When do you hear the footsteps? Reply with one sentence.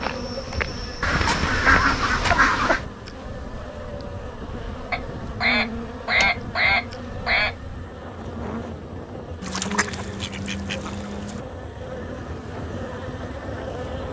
The footsteps can be heard from 0.0 to 2.4 s.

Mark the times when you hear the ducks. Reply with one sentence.
The ducks can be heard from 1.0 to 2.9 s, from 4.9 to 7.5 s and from 9.4 to 11.4 s.